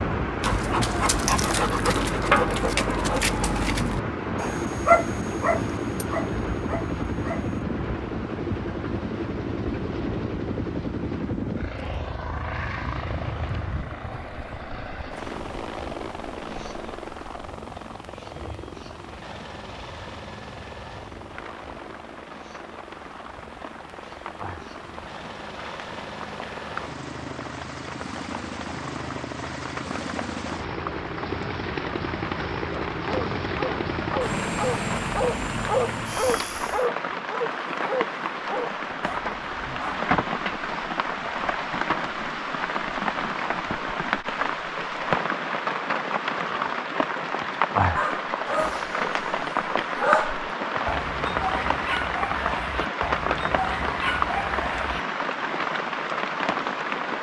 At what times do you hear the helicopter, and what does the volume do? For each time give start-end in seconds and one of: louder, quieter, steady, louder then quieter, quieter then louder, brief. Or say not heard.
0.0-36.9 quieter then louder.